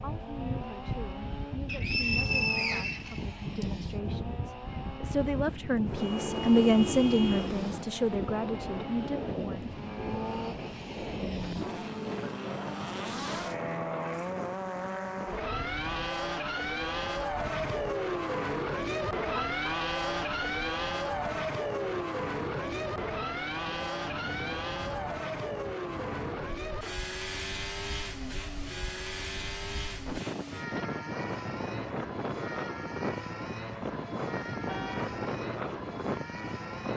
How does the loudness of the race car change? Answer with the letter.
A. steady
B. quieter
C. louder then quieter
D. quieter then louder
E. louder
C.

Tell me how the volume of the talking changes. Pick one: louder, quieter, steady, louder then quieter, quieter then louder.
louder then quieter.